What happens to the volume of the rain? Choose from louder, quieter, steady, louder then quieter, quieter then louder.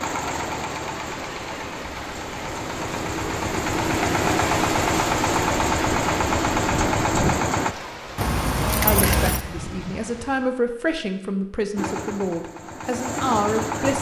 louder then quieter.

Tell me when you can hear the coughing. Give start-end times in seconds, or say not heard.
not heard.